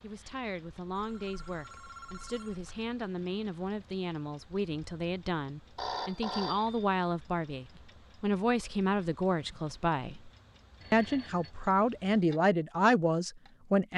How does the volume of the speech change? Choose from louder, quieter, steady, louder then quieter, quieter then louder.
louder.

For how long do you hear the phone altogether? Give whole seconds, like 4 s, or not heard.
4 s.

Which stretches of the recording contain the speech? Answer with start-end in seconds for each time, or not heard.
0.0-10.3, 10.9-13.9.